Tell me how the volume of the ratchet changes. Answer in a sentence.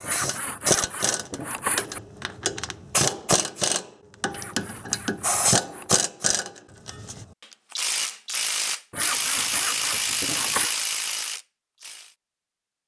The volume of the ratchet stays about the same.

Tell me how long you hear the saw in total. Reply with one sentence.
The saw can be heard for 6 seconds in total.